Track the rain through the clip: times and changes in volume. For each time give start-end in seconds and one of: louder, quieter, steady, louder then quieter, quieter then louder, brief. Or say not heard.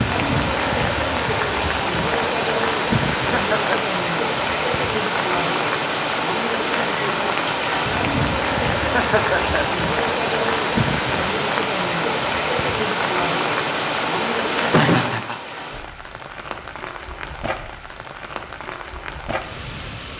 0.0-20.1 quieter.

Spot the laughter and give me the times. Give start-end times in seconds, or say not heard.
3.1-4.0, 8.8-9.8, 14.6-15.3.